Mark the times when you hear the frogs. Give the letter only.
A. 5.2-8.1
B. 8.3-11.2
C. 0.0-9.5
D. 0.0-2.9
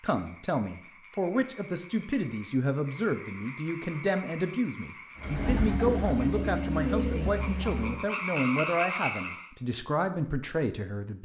C.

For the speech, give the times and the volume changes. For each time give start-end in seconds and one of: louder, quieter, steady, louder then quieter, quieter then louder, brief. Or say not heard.
0.0-11.2 steady.